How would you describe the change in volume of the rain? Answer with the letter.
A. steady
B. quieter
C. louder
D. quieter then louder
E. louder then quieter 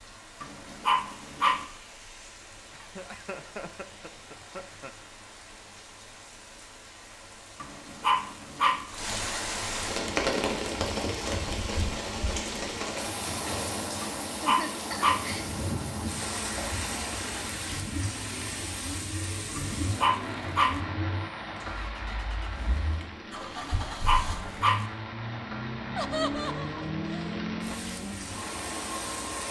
E.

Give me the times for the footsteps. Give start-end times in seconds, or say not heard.
not heard.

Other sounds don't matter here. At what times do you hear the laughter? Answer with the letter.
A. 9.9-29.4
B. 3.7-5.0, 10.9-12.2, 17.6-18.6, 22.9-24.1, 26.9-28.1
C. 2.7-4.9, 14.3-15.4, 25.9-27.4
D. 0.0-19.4
C.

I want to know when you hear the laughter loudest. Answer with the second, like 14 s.
26 s.